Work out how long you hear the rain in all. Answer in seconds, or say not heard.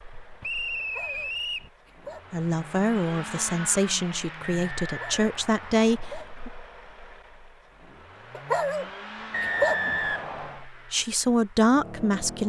not heard.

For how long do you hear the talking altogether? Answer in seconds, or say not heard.
6 s.